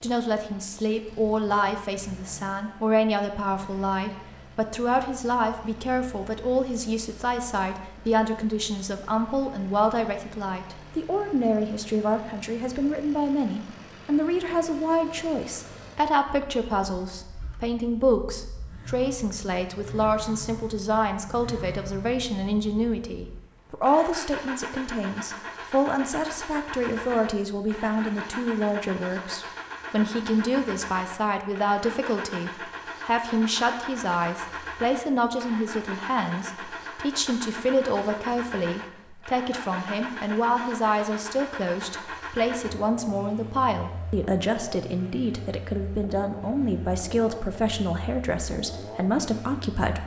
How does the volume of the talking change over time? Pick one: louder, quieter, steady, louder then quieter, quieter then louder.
steady.